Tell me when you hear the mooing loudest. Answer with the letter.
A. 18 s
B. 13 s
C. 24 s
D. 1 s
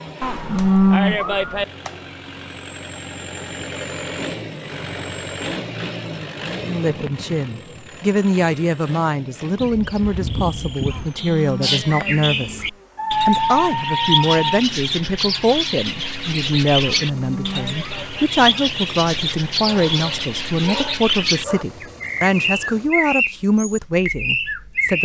D.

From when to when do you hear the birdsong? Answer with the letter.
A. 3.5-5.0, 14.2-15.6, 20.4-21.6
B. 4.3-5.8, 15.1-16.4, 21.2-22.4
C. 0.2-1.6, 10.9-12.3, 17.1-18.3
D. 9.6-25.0
D.